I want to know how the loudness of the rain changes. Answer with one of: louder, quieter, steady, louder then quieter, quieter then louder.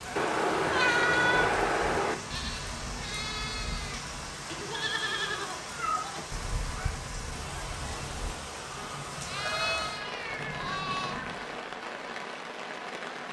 steady.